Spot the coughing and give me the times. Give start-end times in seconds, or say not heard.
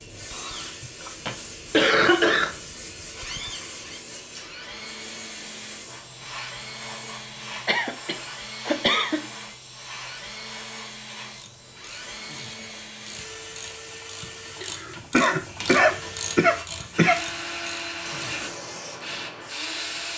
1.1-2.5, 7.7-9.2, 14.6-17.2.